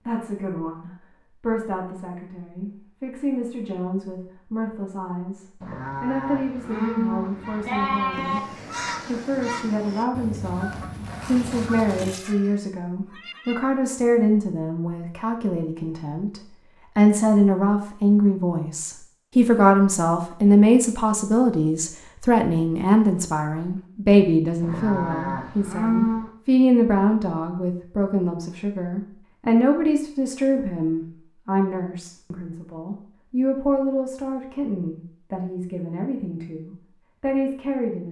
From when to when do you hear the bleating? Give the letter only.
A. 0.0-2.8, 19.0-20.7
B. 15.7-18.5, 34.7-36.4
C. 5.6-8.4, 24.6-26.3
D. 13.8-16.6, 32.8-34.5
C.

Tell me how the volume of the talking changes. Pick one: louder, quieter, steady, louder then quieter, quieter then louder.
louder then quieter.